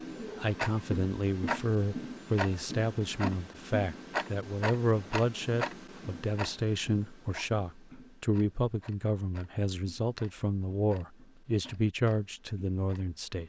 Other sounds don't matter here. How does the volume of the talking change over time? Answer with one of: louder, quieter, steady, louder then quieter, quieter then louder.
steady.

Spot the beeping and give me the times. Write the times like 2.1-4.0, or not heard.
not heard.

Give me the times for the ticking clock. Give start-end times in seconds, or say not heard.
0.0-13.4.